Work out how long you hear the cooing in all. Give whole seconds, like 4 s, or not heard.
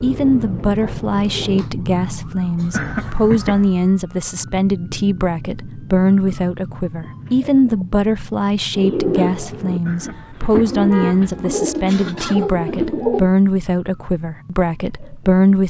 6 s.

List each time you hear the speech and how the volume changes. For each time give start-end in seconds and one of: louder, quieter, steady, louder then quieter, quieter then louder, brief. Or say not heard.
0.0-15.6 steady.